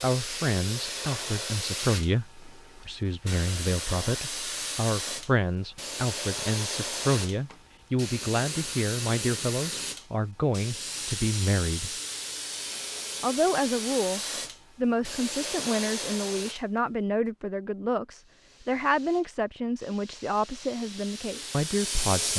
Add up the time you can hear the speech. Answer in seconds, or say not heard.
21 s.